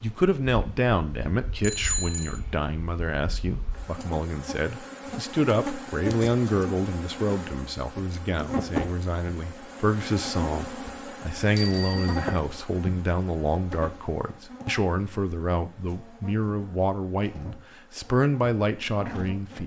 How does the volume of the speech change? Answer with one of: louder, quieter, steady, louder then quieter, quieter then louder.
steady.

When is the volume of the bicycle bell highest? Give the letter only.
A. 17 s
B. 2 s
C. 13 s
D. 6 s
B.